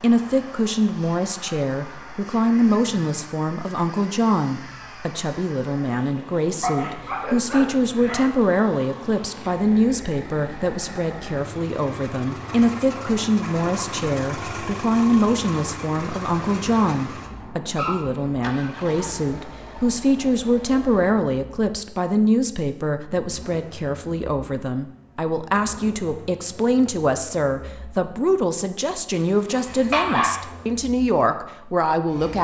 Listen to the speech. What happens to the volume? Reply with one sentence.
The loudness of the speech stays about the same.